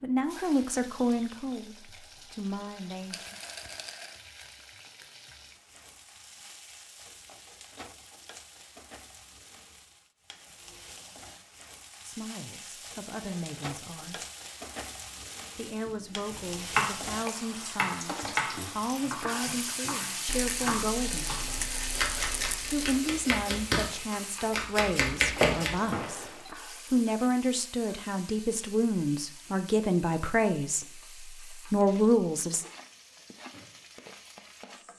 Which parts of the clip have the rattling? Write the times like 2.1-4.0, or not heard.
3.1-4.2, 20.2-22.9.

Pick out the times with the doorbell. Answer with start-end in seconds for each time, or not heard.
25.4-26.5.